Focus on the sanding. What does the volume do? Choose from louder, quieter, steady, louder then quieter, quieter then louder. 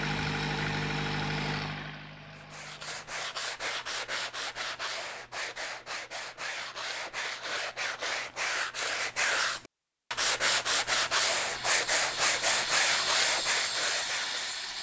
louder.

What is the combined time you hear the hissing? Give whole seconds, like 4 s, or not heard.
3 s.